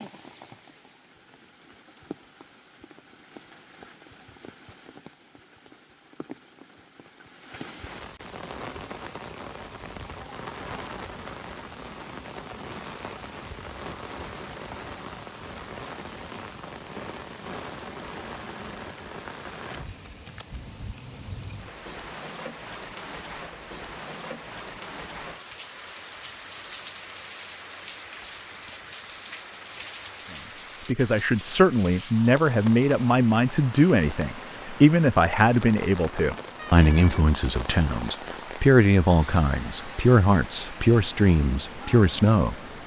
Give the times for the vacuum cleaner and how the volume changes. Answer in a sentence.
The vacuum cleaner can't be heard in this clip.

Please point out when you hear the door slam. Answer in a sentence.
You can't hear the door slam here.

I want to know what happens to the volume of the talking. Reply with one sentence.
The volume of the talking stays about the same.